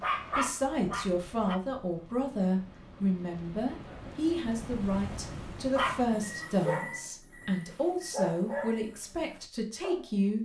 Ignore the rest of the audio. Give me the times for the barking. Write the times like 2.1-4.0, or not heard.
0.0-1.6, 5.8-10.3.